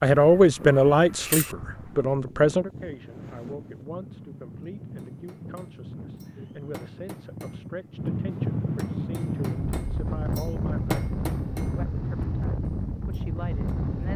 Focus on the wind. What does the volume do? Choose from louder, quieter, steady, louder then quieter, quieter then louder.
louder.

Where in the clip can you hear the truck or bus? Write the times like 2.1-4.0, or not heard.
not heard.